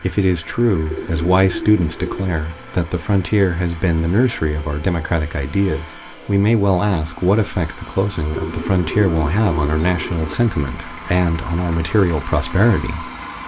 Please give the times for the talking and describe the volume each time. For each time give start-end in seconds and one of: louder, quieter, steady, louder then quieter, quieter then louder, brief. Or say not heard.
0.0-13.1 steady.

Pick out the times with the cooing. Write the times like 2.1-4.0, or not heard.
0.9-2.4, 8.3-10.3.